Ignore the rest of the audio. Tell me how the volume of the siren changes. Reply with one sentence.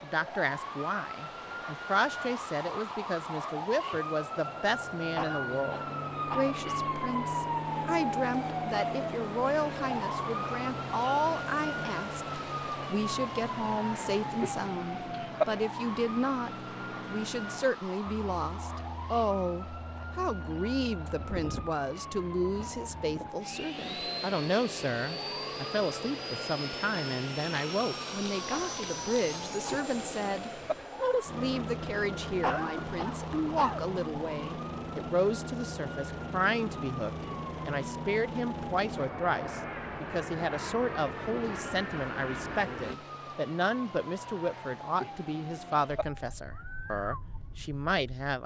The loudness of the siren goes down.